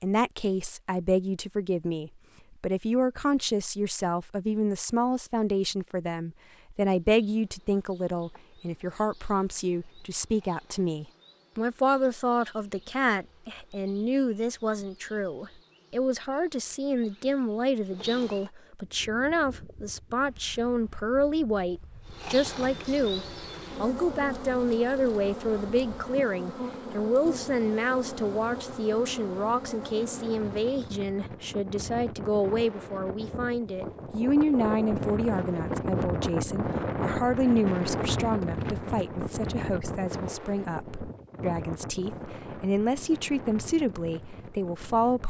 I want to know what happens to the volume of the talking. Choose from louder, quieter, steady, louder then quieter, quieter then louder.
steady.